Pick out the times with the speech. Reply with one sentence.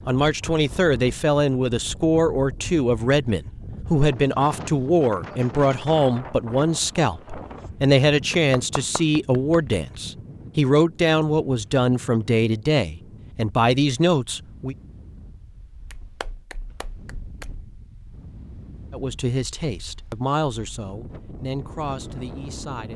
You can hear the speech from 0.1 to 14.8 s and from 18.9 to 22.9 s.